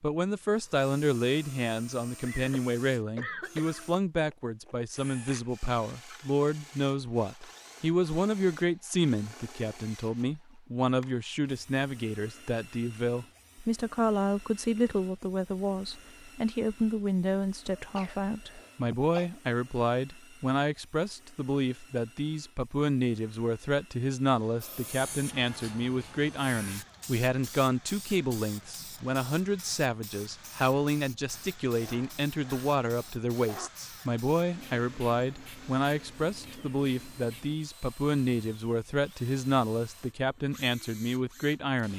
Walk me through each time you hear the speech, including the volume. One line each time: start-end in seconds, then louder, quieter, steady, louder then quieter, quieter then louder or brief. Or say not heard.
0.0-41.9 steady.